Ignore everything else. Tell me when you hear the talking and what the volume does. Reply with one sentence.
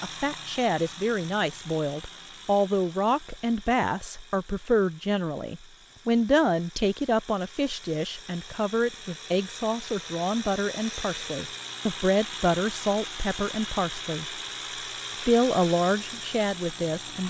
The talking can be heard from 0.0 to 14.2 s, at a steady volume; and briefly from 15.2 to 17.2 s.